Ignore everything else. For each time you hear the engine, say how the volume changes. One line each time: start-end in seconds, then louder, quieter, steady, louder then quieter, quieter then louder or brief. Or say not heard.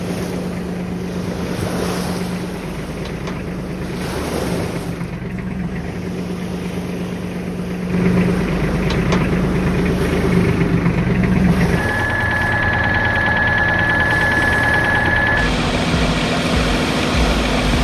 0.0-17.7 louder.